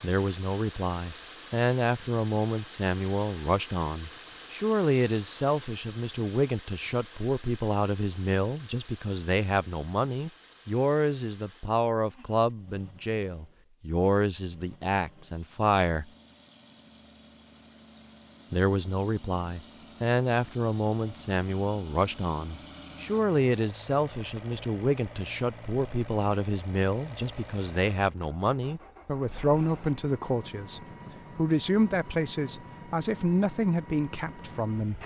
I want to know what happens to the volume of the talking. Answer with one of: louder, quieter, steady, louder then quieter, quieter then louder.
steady.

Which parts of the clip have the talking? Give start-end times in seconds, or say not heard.
0.0-16.1, 18.5-35.0.